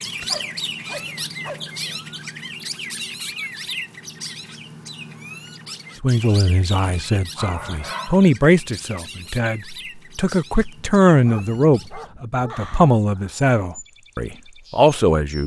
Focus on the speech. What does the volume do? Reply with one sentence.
The loudness of the speech goes up.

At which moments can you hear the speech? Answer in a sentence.
The speech can be heard from 6.0 to 15.4 s.